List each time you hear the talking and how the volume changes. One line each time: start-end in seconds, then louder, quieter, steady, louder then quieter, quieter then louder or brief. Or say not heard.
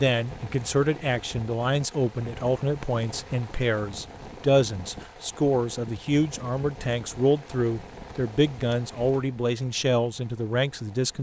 0.0-11.1 steady.